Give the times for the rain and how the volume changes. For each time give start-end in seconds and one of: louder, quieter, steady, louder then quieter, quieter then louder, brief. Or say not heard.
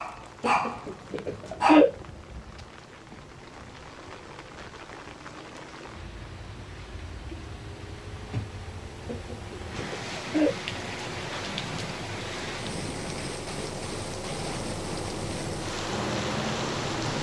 0.0-17.1 louder.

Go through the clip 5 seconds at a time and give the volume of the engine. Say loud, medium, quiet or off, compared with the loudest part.
quiet, quiet, medium, loud.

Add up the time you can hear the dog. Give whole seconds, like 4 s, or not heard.
2 s.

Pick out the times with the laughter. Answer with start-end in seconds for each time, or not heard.
0.4-1.9, 9.1-10.6.